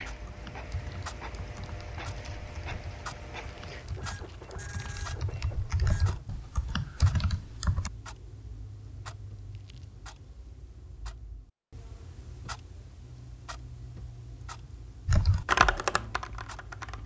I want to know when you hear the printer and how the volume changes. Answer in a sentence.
You can hear the printer from 0.0 to 6.2 s, at a steady volume.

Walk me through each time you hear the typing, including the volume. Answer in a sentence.
The typing can be heard from 0.2 to 7.9 s, getting louder; and briefly from 15.1 to 17.0 s.